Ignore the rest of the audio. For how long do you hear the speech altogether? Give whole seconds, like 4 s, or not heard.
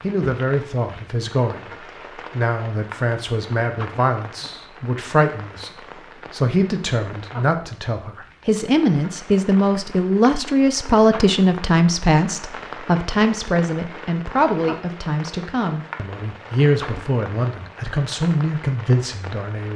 20 s.